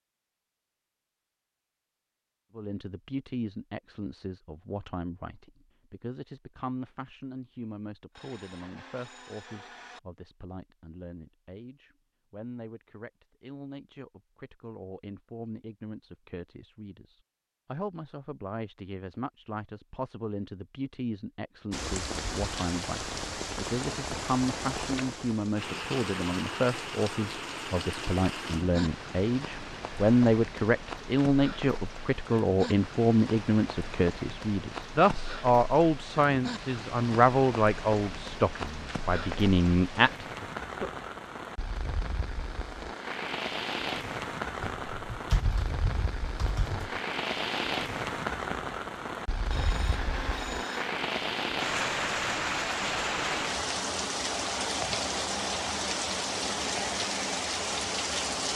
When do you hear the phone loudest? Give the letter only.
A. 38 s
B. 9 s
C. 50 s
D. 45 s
C.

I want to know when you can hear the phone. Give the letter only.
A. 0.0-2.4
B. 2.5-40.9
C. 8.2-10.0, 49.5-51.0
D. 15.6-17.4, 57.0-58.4
C.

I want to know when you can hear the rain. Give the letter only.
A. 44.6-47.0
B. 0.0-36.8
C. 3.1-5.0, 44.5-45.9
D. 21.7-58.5
D.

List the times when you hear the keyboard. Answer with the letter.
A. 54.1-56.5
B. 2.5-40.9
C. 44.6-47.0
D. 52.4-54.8
C.